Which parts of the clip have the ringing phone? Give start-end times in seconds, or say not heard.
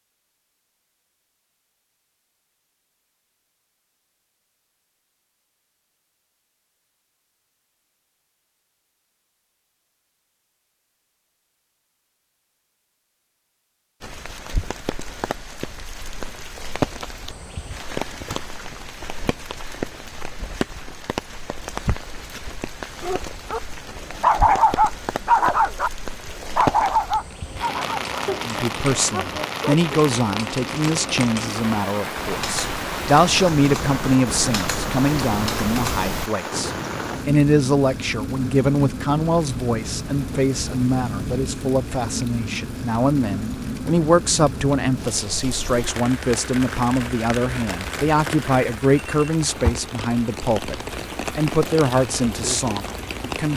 not heard.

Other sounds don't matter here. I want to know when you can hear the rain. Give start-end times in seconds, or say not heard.
14.0-53.5.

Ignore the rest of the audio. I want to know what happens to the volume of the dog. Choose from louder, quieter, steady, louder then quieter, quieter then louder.
quieter.